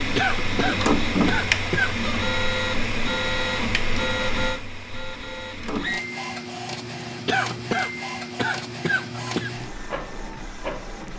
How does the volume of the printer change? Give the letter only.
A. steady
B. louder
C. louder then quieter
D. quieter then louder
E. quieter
E.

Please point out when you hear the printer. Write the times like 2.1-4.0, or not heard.
0.0-11.1.